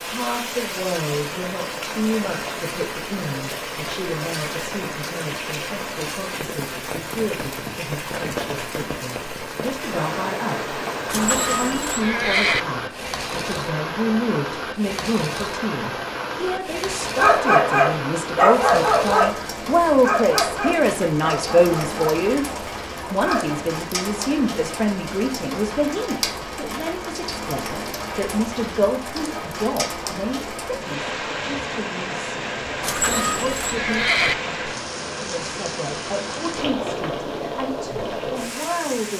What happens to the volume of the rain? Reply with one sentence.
The loudness of the rain stays about the same.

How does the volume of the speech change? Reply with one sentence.
The volume of the speech goes up, then down.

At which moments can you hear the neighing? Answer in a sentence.
The neighing can be heard from 11.1 to 12.7 s and from 32.8 to 34.4 s.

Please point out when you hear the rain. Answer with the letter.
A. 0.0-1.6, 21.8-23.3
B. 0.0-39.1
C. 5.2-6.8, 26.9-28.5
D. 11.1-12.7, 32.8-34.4
B.